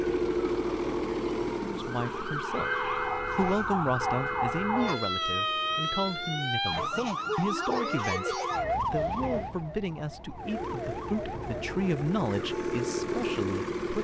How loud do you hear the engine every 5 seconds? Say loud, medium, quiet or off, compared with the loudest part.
loud, quiet, loud.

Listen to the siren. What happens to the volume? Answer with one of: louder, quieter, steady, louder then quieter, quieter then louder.
quieter.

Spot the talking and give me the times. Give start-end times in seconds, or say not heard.
1.6-13.9.